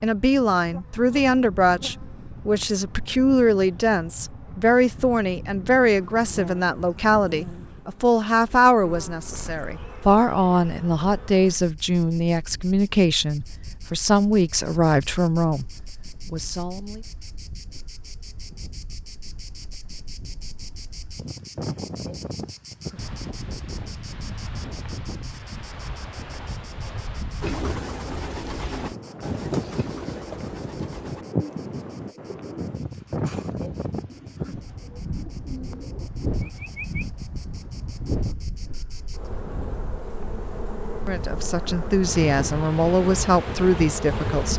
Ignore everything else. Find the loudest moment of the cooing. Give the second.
28 s.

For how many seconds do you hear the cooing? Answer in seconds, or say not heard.
10 s.